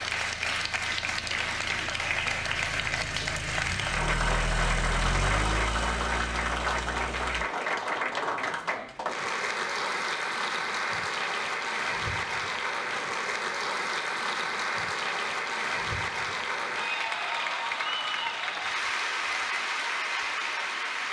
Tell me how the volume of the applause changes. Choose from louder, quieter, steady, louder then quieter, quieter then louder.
steady.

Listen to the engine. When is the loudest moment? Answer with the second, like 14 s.
5 s.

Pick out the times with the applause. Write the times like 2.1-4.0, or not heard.
0.0-21.0.